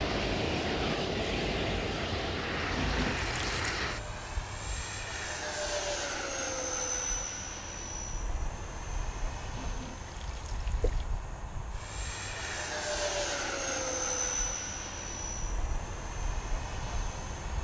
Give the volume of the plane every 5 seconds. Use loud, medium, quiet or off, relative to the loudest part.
loud, loud, loud, medium.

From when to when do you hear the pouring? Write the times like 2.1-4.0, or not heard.
2.7-3.8, 9.5-11.1.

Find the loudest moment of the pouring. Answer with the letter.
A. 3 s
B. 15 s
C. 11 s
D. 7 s
A.